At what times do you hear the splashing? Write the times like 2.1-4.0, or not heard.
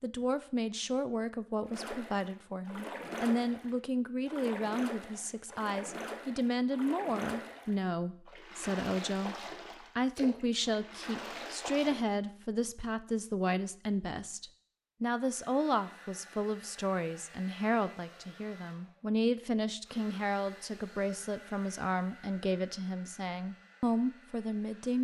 1.6-12.2.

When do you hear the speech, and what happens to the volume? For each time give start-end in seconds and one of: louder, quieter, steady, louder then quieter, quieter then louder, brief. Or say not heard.
0.0-24.9 steady.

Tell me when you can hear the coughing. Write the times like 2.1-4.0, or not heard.
not heard.